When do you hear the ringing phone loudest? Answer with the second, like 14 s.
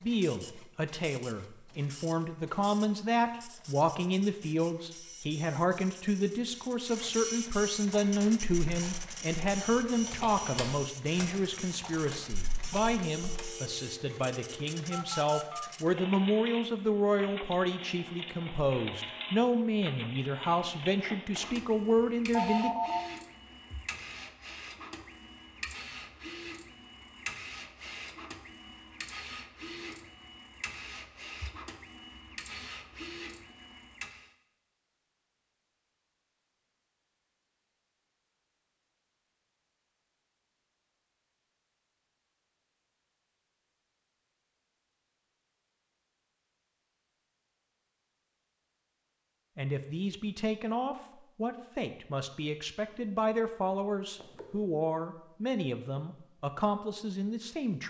23 s.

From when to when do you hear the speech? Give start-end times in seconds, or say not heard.
0.0-22.7, 49.5-57.8.